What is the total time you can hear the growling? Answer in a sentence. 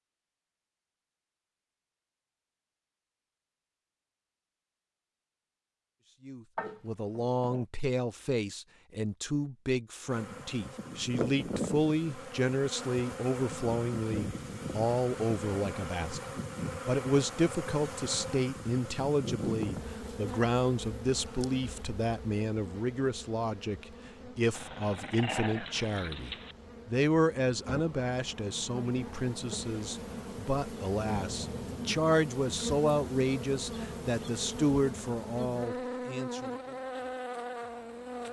The growling can be heard for 3 seconds in total.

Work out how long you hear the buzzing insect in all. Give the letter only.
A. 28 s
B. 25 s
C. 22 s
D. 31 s
A.